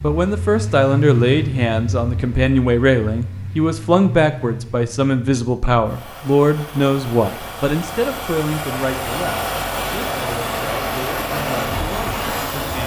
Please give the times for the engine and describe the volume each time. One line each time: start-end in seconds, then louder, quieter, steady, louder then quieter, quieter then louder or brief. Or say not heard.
0.0-12.8 quieter then louder.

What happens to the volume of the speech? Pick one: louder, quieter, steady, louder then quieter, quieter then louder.
quieter.